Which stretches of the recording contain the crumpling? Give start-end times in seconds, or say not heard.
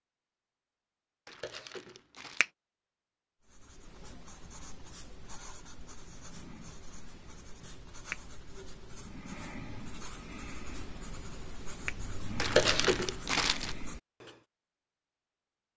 1.2-2.5, 12.3-13.8.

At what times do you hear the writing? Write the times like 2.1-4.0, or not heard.
3.5-14.4.